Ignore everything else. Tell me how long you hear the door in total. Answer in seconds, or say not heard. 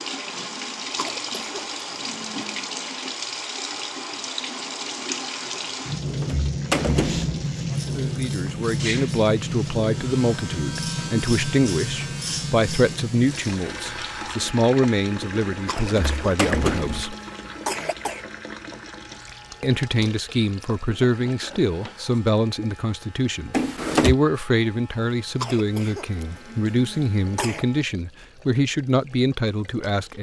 4 s.